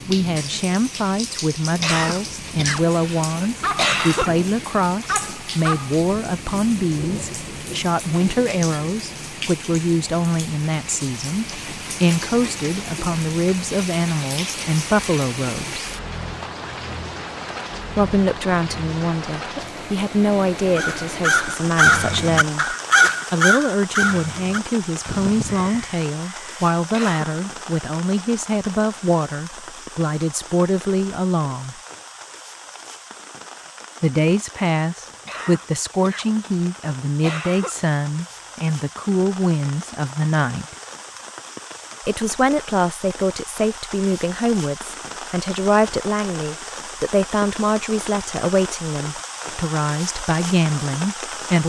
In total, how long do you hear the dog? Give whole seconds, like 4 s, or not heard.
2 s.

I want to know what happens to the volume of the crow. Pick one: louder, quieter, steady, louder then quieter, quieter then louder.
quieter.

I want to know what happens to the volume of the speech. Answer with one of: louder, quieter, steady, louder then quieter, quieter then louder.
steady.